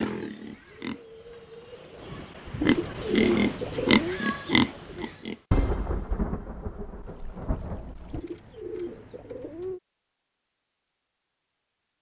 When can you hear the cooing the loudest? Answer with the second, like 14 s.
3 s.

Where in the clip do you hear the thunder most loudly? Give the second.
6 s.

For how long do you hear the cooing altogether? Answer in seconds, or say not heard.
3 s.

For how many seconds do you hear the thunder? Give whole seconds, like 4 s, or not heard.
3 s.